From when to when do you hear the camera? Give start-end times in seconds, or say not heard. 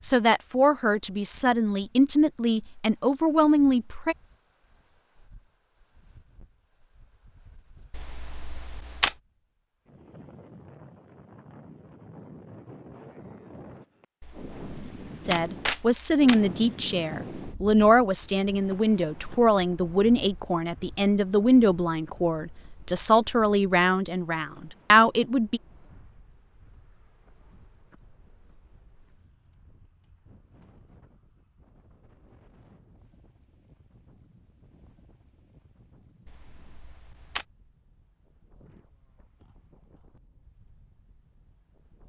7.9-9.2, 14.2-16.4, 36.2-37.5.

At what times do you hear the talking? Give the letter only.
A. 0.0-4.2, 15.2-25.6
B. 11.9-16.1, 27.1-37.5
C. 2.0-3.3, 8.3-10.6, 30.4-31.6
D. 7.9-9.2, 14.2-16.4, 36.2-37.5
A.